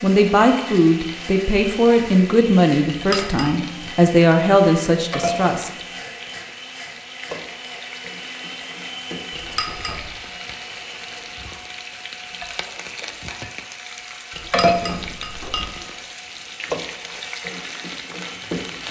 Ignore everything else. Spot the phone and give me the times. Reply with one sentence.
The phone can't be heard in this clip.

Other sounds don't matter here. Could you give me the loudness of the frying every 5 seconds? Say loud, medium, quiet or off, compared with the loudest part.
medium, medium, loud, loud.